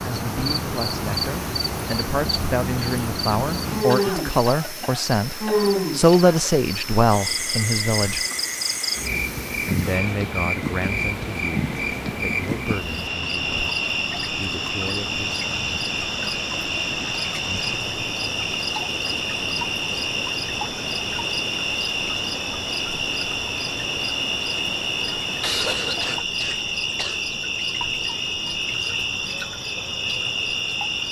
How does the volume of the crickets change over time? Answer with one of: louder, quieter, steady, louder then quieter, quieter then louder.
steady.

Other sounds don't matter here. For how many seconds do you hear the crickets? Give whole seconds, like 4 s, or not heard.
31 s.